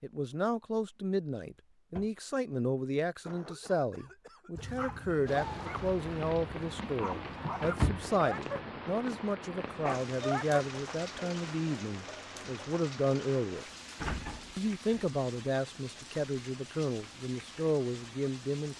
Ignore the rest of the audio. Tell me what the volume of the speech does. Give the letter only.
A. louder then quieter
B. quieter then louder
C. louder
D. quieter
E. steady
E.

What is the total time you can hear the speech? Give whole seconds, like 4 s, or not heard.
18 s.